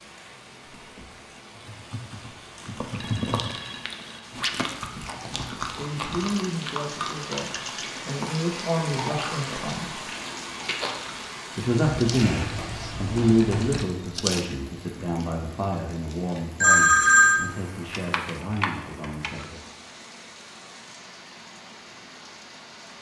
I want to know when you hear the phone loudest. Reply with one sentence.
The loudest moment of the phone is at 17 seconds.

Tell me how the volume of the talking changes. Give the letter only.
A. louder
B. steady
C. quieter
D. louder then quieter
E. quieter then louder
D.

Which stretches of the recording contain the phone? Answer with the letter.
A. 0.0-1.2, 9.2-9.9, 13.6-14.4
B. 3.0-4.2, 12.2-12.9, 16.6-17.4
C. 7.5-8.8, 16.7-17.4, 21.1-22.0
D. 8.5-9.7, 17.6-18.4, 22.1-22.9
B.